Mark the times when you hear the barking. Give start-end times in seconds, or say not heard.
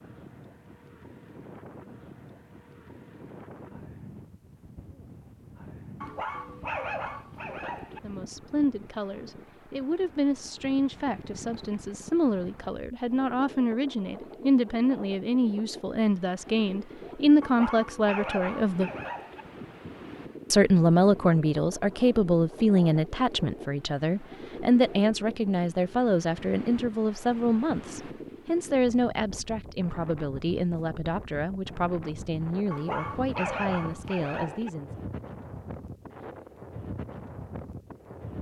6.0-8.0, 17.4-19.4, 32.7-34.7.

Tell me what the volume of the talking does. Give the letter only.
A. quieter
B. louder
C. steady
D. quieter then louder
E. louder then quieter
E.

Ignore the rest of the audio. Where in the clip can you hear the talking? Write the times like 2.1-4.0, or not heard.
8.0-18.9, 20.5-35.0.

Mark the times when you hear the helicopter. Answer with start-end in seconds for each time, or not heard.
not heard.